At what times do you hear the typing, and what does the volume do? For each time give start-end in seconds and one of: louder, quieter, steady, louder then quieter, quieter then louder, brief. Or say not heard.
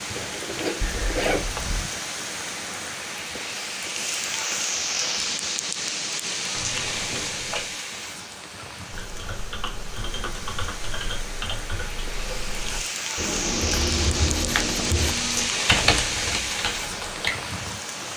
8.9-17.3 louder.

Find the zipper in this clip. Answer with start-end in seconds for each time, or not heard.
0.1-1.5.